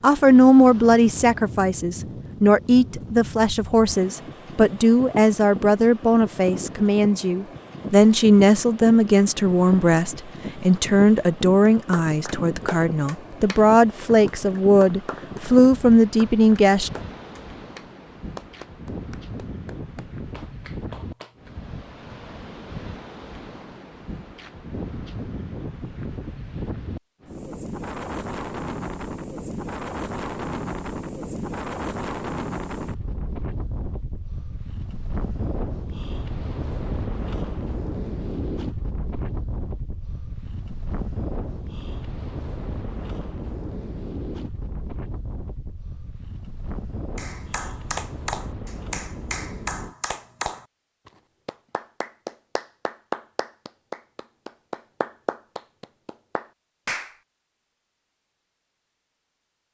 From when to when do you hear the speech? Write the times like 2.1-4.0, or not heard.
0.0-16.9.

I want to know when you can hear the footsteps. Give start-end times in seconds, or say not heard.
not heard.